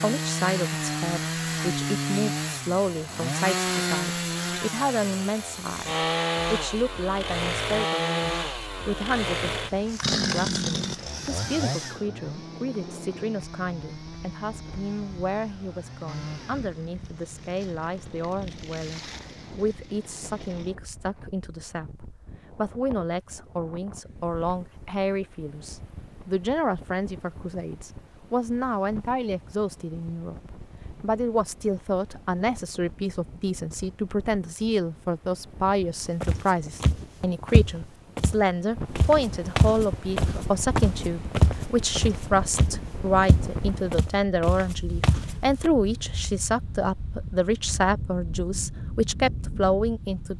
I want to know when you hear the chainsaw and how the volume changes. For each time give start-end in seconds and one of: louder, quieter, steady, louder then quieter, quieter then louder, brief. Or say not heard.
0.0-20.8 quieter.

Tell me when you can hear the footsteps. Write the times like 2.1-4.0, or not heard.
36.2-45.7.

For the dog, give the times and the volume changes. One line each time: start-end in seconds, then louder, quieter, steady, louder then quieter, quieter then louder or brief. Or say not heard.
not heard.